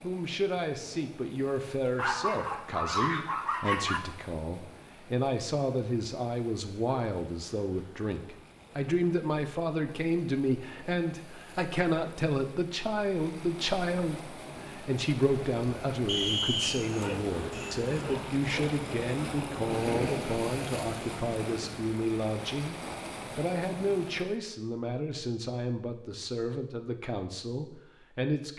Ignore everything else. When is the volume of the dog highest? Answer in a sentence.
The loudest moment of the dog is at 3 seconds.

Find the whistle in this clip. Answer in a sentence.
You can hear the whistle from 16.1 to 16.8 s.